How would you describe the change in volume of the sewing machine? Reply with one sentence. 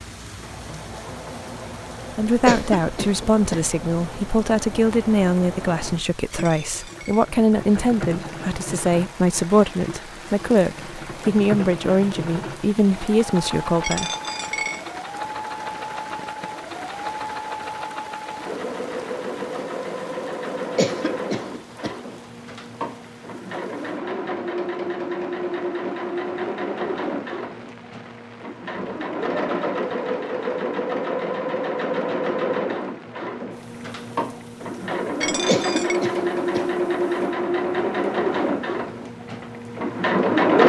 The volume of the sewing machine goes up.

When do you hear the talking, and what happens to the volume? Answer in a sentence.
You can hear the talking from 2.1 to 14.1 s, at a steady volume.